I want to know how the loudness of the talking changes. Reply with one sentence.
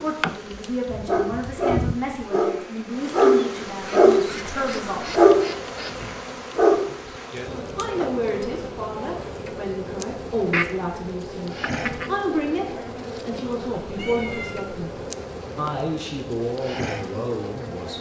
The volume of the talking stays about the same.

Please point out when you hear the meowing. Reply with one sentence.
You can hear the meowing from 13.9 to 14.8 s.